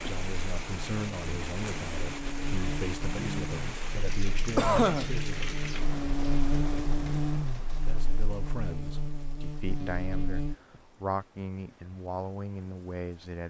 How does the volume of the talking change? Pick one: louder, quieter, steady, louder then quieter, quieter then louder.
steady.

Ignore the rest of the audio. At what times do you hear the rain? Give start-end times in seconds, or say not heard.
0.0-13.4.